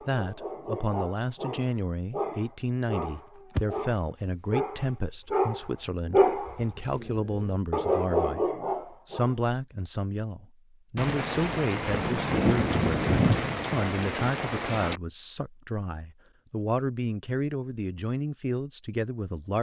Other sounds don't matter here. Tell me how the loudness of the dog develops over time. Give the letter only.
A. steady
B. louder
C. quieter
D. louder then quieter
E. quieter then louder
B.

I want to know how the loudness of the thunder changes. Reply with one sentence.
The loudness of the thunder goes up, then down.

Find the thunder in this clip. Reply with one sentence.
You can hear the thunder from 10.9 to 15.0 s.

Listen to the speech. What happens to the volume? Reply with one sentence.
The volume of the speech stays about the same.